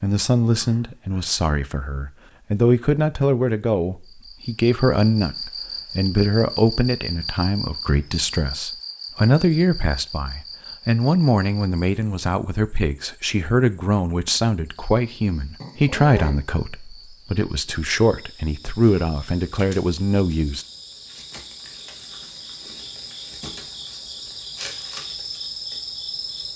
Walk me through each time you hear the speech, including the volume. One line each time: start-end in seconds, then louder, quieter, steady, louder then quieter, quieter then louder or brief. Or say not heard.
0.0-20.6 steady.